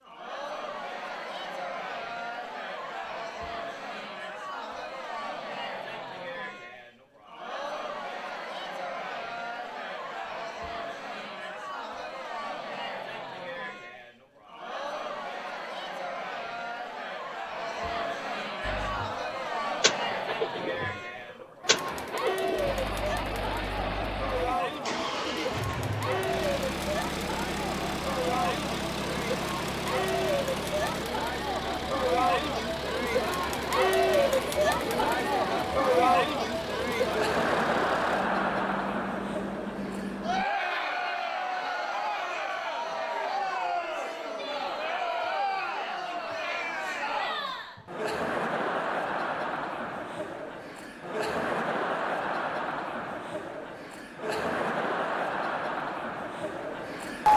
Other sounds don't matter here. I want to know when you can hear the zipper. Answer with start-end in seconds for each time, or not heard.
not heard.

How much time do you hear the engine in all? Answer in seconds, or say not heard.
22 s.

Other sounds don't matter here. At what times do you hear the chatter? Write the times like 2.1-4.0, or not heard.
0.0-57.3.